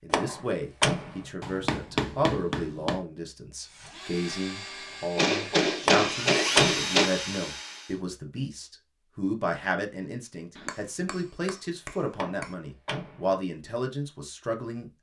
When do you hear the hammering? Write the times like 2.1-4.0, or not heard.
1.4-3.0, 5.2-7.1, 10.6-12.5.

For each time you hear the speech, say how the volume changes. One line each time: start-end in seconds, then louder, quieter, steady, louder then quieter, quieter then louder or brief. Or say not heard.
0.0-14.9 steady.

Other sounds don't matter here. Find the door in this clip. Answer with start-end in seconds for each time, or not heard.
0.1-1.2, 5.8-6.9, 12.2-13.3.